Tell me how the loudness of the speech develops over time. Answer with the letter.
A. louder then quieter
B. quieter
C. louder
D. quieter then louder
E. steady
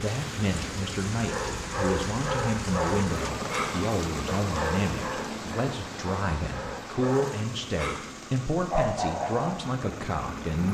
E.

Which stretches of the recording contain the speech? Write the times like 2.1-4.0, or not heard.
0.0-10.7.